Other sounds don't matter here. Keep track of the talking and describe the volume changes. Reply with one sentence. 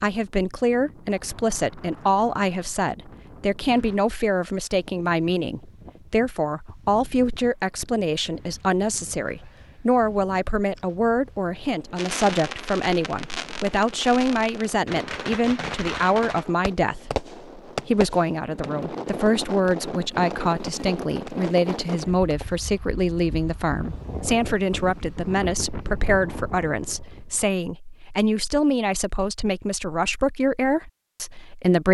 The volume of the talking stays about the same.